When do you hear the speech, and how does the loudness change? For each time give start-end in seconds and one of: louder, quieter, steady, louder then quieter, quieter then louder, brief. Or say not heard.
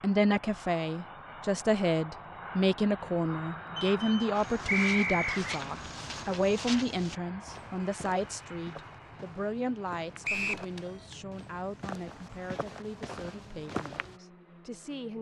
0.0-15.1 quieter.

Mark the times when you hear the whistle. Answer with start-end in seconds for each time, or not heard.
4.7-5.5, 10.2-10.7.